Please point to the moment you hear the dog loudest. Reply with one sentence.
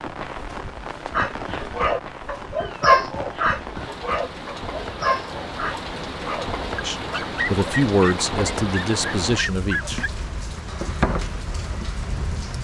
The loudest moment of the dog is at 3 seconds.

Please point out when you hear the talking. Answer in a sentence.
The talking can be heard from 6.8 to 10.1 s.